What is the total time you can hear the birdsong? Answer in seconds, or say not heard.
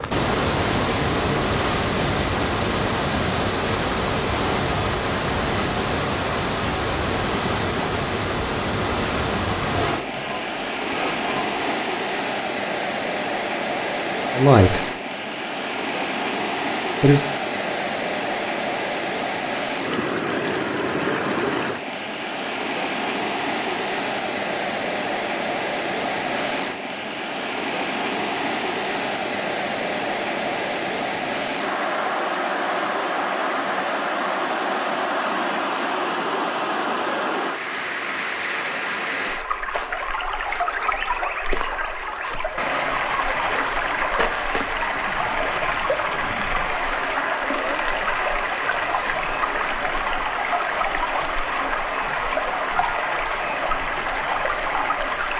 not heard.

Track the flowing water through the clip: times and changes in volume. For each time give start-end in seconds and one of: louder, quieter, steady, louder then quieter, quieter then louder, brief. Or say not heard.
0.0-55.3 steady.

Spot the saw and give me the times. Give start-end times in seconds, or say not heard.
9.7-11.8.